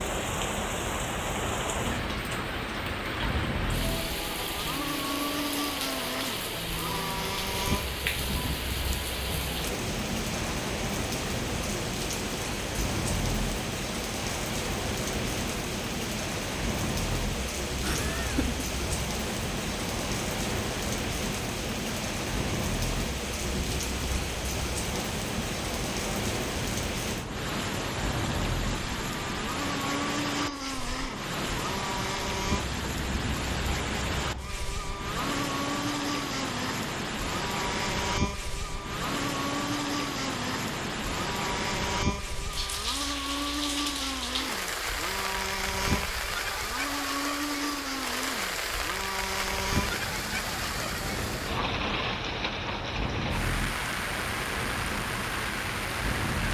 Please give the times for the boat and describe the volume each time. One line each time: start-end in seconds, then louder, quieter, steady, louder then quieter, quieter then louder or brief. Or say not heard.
0.0-56.4 steady.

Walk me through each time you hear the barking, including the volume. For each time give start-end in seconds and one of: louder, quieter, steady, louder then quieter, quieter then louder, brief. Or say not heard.
not heard.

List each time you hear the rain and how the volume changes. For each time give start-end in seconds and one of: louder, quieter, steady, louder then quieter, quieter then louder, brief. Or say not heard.
0.0-56.4 steady.